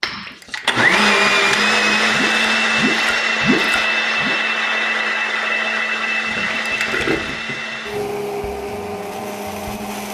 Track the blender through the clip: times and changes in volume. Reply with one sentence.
The blender can be heard from 0.0 to 10.1 s, getting quieter.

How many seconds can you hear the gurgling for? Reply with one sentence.
The gurgling can be heard for 6 seconds in total.